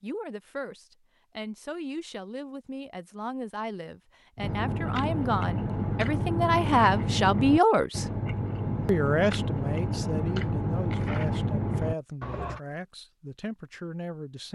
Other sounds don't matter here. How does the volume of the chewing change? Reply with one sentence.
The loudness of the chewing stays about the same.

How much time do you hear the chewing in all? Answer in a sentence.
You can hear the chewing for 8 seconds altogether.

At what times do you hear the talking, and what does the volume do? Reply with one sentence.
You can hear the talking from 0.0 to 8.1 s, getting louder; and from 8.8 to 14.4 s, getting quieter.